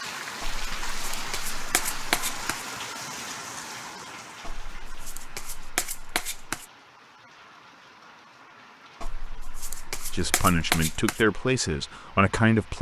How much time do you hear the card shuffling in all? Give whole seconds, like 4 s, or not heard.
7 s.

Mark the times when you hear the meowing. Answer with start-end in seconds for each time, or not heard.
not heard.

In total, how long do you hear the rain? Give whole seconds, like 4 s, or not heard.
13 s.